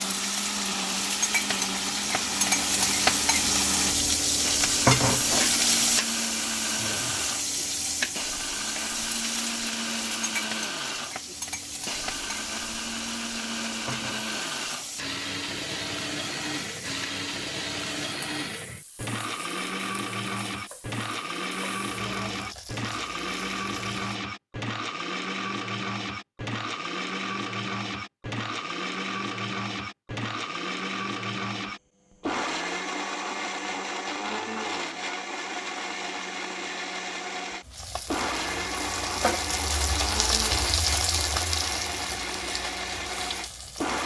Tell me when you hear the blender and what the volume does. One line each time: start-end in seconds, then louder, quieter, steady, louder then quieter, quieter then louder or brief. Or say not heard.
0.0-44.0 steady.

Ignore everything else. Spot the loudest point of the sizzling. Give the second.
5 s.